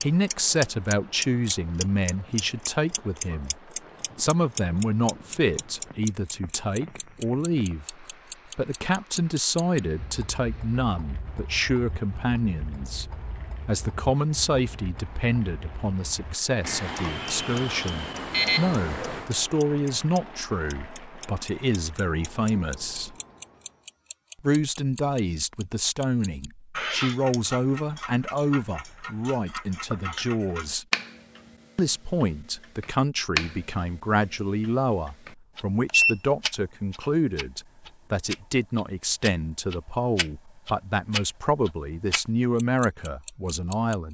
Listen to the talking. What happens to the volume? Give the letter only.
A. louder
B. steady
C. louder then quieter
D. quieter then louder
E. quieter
B.